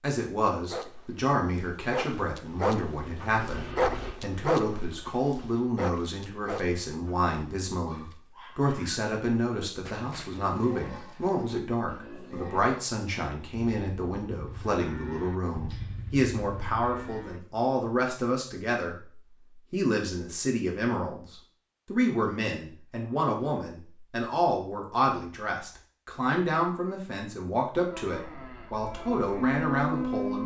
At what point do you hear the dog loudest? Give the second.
4 s.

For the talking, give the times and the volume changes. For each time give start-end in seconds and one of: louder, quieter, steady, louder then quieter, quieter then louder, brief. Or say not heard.
0.0-30.4 steady.